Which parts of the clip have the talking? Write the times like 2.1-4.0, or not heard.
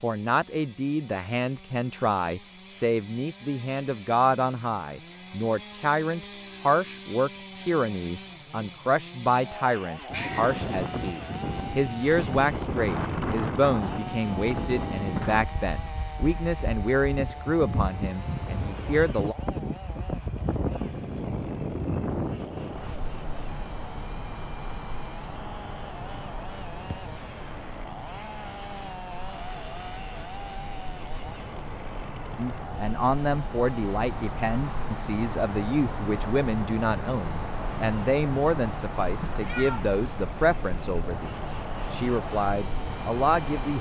0.0-19.4, 32.4-43.7.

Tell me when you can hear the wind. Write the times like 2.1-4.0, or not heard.
10.1-43.7.